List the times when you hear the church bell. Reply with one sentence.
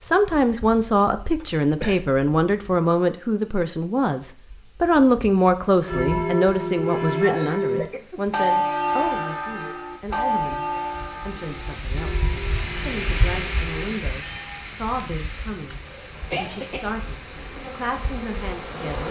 The church bell can be heard from 5.8 to 14.7 s.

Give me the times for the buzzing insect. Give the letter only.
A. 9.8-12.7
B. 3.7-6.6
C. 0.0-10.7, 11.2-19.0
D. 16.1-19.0
D.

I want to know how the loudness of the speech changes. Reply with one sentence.
The loudness of the speech goes down.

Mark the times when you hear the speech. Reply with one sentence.
You can hear the speech from 0.0 to 10.7 s and from 11.2 to 19.0 s.